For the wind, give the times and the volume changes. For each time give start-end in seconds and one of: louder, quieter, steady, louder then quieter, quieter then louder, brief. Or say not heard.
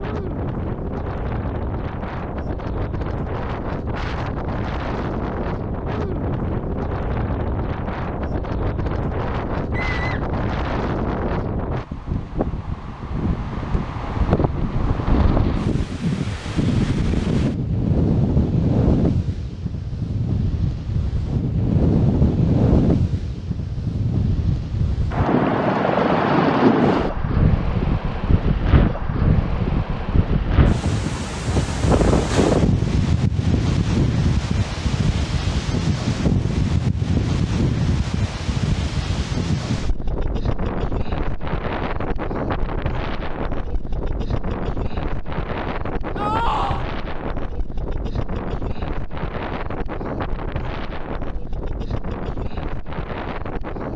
0.0-53.9 louder then quieter.